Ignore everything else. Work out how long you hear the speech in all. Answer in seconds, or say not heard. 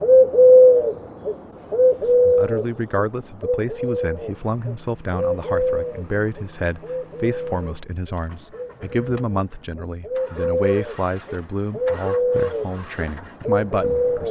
12 s.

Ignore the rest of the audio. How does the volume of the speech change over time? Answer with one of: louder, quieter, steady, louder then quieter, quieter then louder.
steady.